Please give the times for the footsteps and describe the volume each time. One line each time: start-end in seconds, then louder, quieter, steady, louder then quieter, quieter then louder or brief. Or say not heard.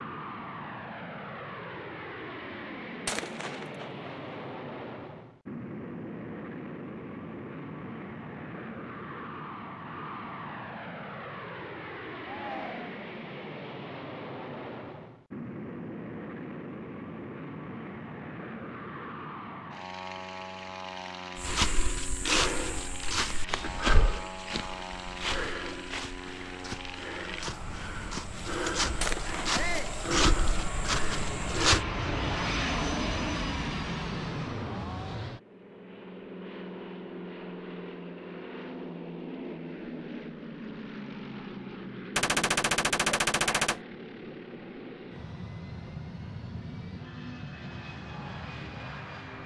21.4-31.9 quieter then louder.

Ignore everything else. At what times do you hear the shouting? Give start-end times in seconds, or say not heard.
12.2-12.9, 29.5-29.9.